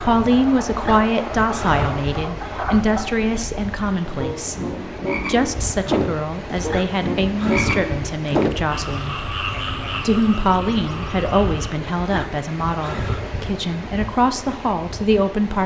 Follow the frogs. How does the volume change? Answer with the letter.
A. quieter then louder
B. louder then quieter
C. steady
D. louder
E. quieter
B.